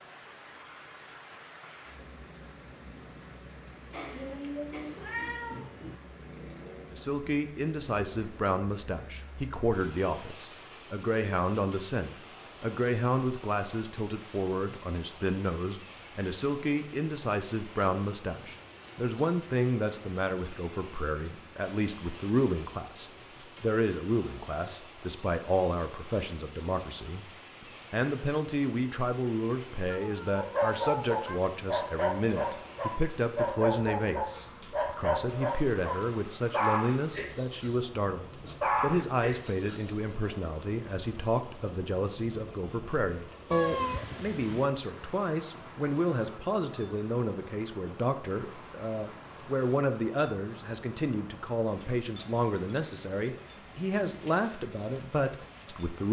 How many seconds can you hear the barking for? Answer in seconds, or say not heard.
10 s.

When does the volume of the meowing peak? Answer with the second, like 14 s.
44 s.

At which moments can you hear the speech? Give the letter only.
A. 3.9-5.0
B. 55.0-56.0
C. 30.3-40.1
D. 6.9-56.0
D.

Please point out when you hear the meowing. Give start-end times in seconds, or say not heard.
4.1-6.0, 29.9-31.5, 43.5-44.6.